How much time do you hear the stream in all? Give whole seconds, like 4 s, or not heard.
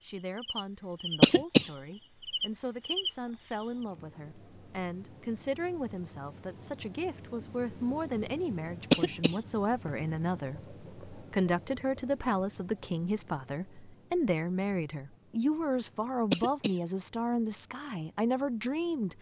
not heard.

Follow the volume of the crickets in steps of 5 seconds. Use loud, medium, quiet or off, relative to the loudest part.
medium, loud, medium, quiet.